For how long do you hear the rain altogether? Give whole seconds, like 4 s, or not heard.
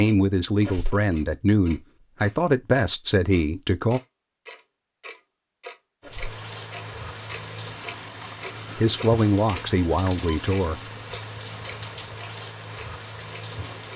8 s.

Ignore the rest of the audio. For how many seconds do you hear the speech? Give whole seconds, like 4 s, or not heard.
6 s.